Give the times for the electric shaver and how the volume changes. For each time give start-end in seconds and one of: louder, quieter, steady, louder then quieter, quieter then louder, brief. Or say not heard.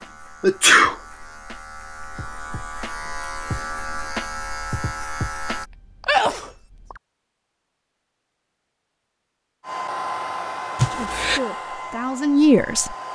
0.0-5.7 louder.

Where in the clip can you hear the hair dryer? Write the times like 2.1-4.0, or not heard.
9.6-13.1.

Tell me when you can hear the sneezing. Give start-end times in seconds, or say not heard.
0.4-0.9, 5.7-7.0, 10.8-11.4.